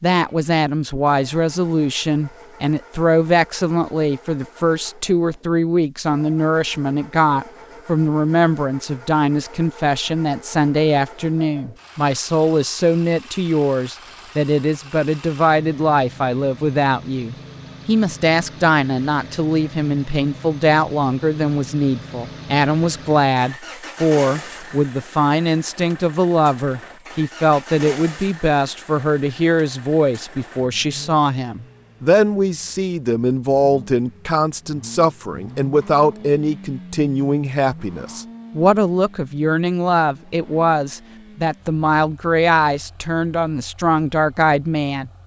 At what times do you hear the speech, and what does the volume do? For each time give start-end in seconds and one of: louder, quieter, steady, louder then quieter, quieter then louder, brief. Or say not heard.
0.0-45.1 steady.